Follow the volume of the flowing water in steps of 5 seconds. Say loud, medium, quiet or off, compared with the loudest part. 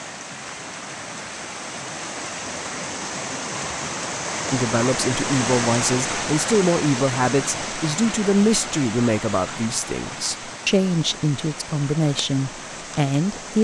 loud, loud, medium.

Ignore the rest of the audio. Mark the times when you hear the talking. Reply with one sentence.
The talking can be heard from 4.5 to 13.5 s.